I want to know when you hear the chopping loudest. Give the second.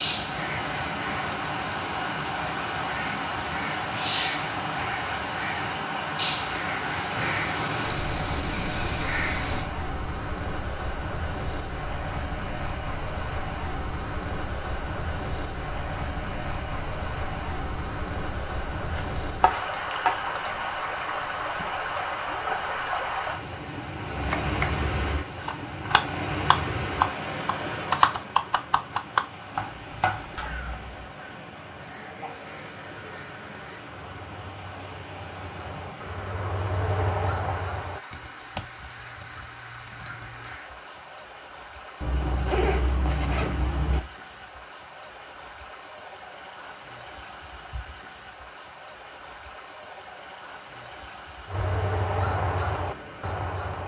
28 s.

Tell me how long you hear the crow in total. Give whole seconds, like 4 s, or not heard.
22 s.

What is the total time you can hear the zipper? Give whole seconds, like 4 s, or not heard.
2 s.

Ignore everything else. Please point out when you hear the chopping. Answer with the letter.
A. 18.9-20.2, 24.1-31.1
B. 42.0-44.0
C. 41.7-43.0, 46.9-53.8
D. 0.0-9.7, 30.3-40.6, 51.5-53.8
A.